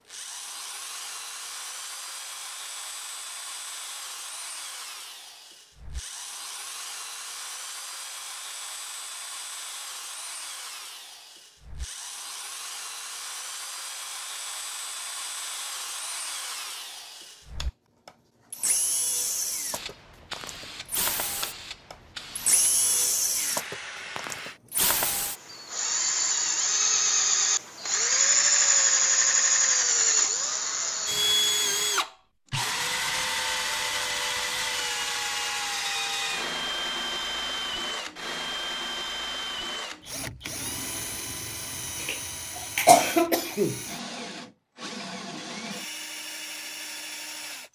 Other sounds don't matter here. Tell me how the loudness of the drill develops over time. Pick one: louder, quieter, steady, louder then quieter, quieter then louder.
louder then quieter.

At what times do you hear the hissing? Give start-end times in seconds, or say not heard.
19.6-24.6.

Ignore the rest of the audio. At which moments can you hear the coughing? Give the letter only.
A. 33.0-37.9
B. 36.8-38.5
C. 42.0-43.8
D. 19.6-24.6
C.